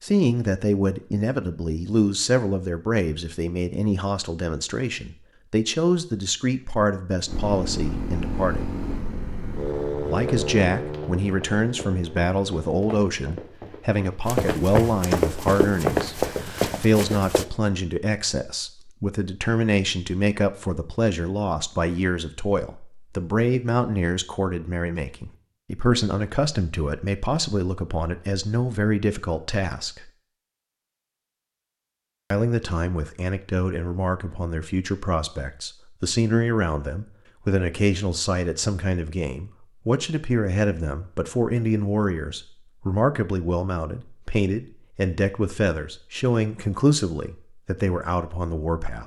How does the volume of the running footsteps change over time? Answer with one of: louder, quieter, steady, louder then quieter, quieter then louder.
louder.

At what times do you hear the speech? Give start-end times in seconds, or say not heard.
0.0-8.7, 10.1-30.1, 32.3-49.0.